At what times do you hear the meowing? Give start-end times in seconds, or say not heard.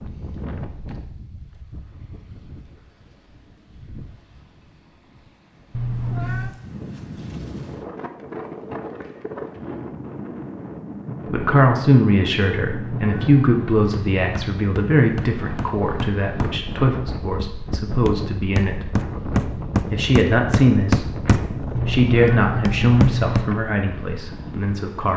5.7-6.5, 12.6-14.4, 21.8-23.5.